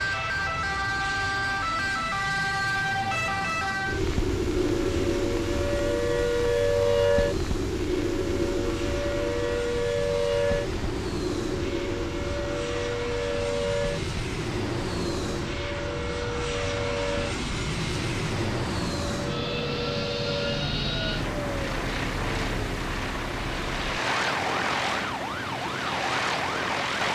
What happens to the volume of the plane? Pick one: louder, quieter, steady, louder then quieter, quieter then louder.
louder.